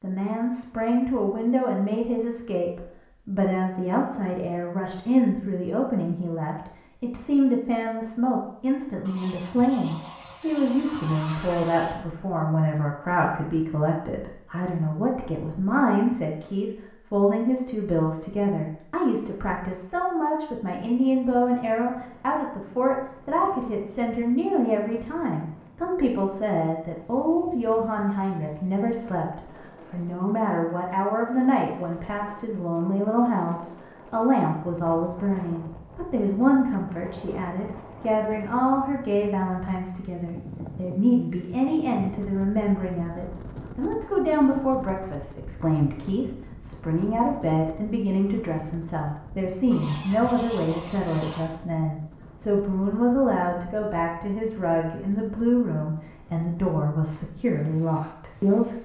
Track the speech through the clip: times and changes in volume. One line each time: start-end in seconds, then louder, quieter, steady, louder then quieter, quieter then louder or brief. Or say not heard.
0.0-58.8 steady.